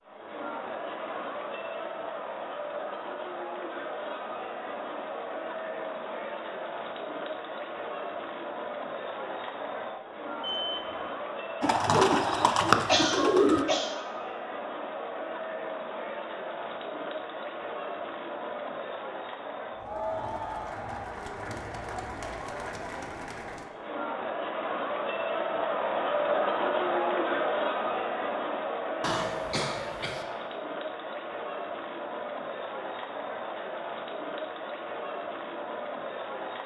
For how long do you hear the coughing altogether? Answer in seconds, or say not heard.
2 s.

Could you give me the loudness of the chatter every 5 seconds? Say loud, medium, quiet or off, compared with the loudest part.
medium, medium, medium, medium, medium, loud, medium, medium.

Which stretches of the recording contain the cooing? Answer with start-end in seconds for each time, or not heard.
11.6-13.7.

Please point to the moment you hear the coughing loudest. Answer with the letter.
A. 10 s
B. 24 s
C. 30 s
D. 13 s
D.